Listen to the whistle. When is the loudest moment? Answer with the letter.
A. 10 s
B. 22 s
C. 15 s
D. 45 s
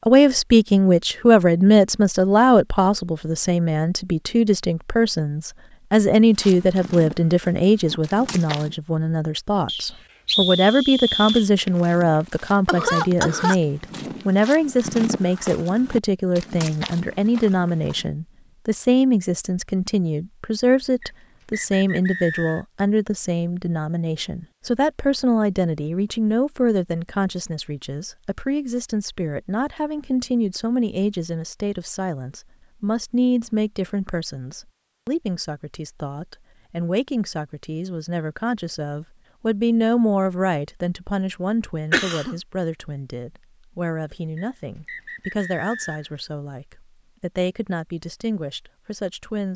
A.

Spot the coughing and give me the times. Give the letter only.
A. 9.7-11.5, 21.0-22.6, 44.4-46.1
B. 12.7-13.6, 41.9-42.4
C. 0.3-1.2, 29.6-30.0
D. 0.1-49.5
B.